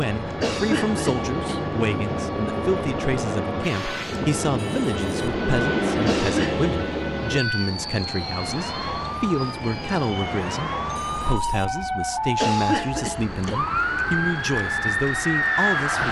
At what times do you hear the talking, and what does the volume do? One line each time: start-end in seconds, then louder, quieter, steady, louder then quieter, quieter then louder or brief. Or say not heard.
0.0-16.0 steady.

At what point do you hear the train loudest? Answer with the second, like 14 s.
6 s.